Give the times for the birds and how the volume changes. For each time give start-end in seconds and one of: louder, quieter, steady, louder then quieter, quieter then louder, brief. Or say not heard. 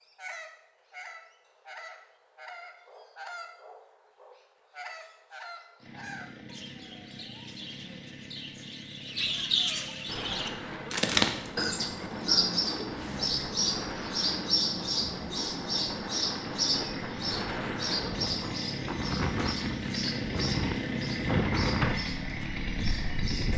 0.0-23.5 louder then quieter.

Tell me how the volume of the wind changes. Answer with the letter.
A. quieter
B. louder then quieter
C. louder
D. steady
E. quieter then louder
C.